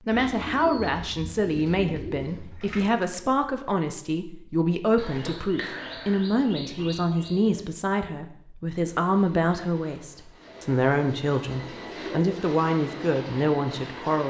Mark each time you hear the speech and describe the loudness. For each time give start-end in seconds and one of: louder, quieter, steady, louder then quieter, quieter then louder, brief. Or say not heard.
0.0-14.2 steady.